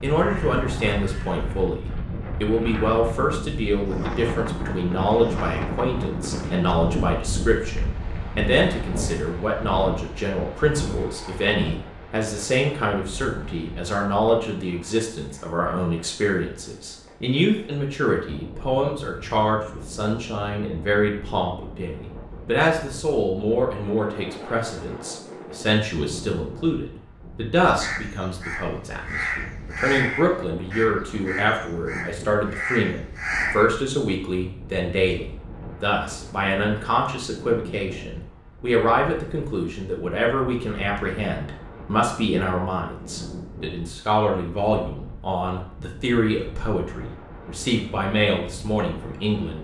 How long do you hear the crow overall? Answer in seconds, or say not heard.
7 s.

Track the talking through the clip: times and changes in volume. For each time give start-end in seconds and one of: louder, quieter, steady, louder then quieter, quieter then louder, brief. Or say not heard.
0.0-49.5 steady.